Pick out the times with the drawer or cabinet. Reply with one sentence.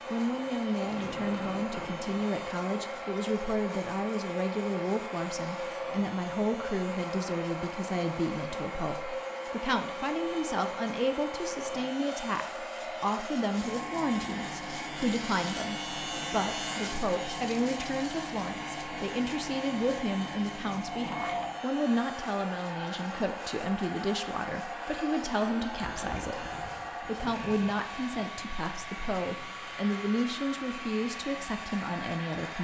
The drawer or cabinet can't be heard in this clip.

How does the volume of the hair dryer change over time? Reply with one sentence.
The loudness of the hair dryer stays about the same.